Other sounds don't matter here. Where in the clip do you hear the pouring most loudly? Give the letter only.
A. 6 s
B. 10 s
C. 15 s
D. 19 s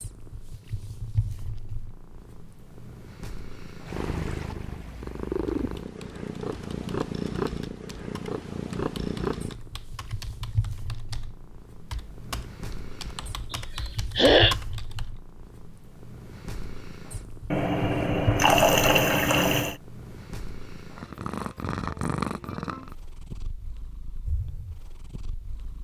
D.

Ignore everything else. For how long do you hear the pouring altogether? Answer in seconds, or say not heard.
2 s.